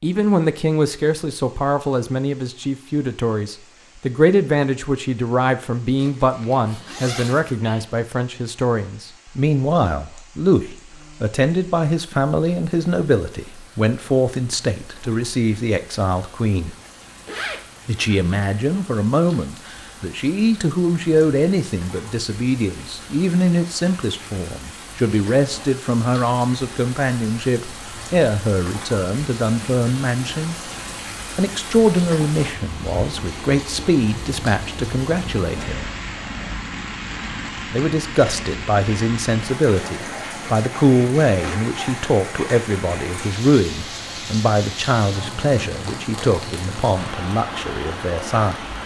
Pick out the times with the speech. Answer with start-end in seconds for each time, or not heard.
0.0-16.8, 17.9-30.6, 31.4-35.9, 37.7-48.8.